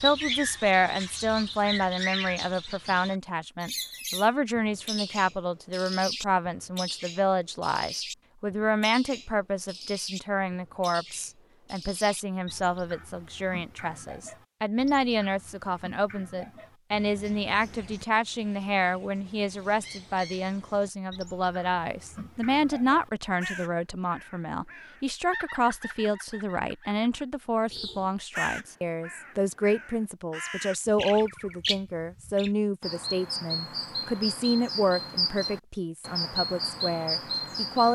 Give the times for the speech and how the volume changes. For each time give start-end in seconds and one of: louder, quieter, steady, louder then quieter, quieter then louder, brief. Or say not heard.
0.0-37.8 steady.